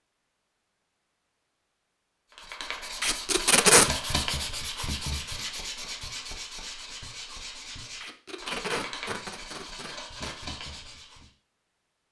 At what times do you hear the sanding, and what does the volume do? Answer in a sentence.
You can hear the sanding from 2.3 to 11.3 s, getting quieter.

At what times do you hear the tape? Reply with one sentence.
The tape can be heard from 3.0 to 3.9 s and from 8.0 to 10.4 s.